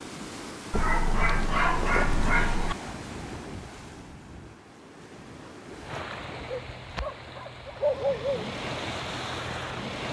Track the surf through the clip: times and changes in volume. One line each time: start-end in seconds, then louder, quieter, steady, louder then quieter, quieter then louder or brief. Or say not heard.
0.0-10.0 quieter then louder.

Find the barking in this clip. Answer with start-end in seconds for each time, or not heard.
0.7-2.8, 6.5-8.4.